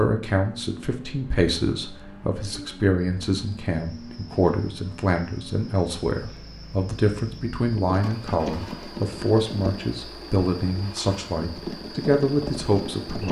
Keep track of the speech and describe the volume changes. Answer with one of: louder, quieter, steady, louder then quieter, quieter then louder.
steady.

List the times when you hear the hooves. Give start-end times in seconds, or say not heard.
7.7-9.9, 11.4-13.2.